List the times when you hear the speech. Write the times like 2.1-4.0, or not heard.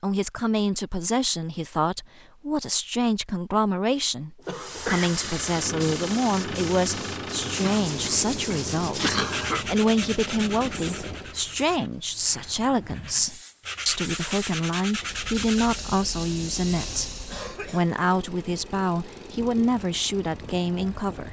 0.0-21.2.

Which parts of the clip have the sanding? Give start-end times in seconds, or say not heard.
7.7-15.8.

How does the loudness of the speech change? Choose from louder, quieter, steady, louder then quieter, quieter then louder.
steady.